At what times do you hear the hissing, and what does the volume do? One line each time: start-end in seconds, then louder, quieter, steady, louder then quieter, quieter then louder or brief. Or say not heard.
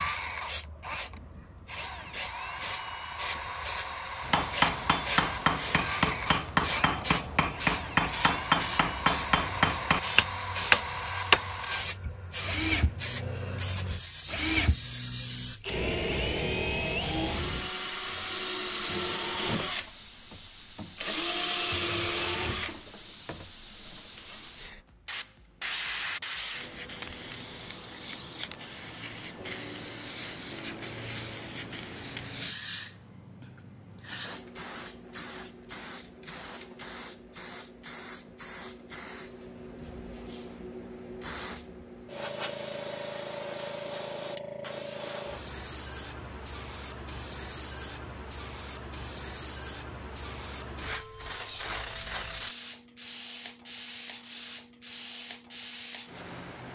0.2-56.7 steady.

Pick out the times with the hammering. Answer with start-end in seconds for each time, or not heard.
4.2-11.6.